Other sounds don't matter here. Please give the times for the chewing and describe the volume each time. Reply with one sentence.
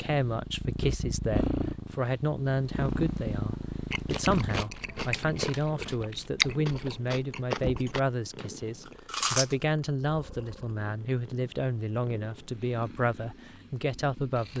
You can hear the chewing from 3.9 to 9.6 s, getting louder then quieter.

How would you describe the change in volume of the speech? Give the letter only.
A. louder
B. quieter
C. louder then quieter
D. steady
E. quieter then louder
D.